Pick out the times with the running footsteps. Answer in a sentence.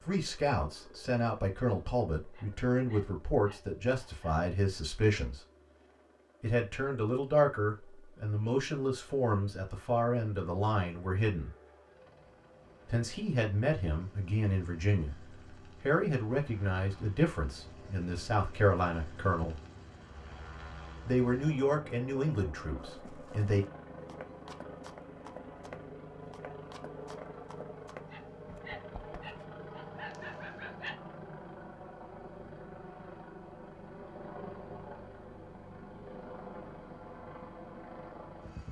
You can hear the running footsteps from 22.9 to 29.4 s.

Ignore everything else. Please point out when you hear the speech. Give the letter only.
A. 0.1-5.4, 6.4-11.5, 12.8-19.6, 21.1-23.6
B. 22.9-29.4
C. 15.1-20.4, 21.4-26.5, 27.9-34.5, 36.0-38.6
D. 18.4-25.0
A.